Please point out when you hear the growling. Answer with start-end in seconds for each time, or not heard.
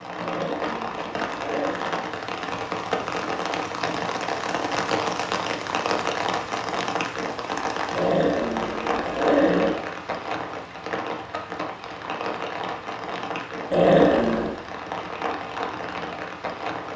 0.1-1.9, 7.9-9.8, 13.7-14.6.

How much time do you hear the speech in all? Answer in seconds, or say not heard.
not heard.